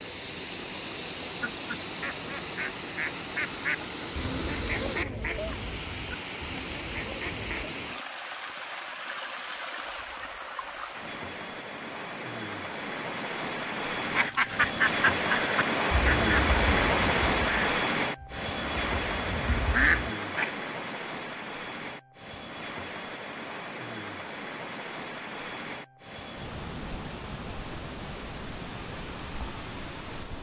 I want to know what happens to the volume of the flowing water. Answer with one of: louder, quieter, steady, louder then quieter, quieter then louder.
louder then quieter.